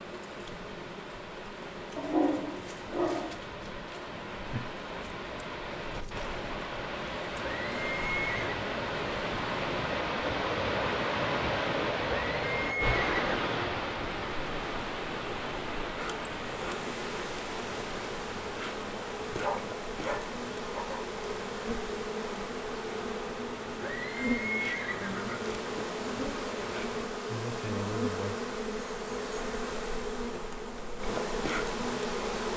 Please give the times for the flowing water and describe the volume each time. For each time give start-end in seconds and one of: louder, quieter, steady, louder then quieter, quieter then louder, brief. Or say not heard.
0.0-27.1 louder then quieter.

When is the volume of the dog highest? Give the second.
2 s.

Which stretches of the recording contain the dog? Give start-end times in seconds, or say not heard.
1.9-3.4, 19.4-21.1.